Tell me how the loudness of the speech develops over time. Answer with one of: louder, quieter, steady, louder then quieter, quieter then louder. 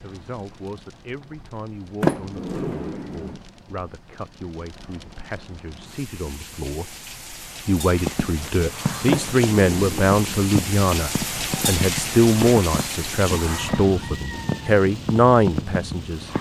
louder.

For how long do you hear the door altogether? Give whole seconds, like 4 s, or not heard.
3 s.